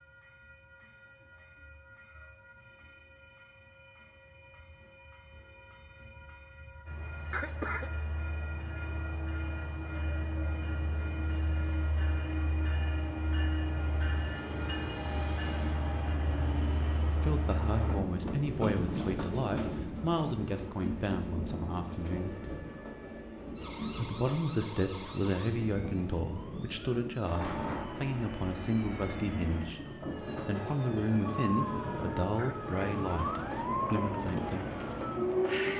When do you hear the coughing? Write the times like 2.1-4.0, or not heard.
7.3-7.9, 32.4-32.9.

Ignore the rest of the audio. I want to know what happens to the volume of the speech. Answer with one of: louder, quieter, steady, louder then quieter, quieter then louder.
steady.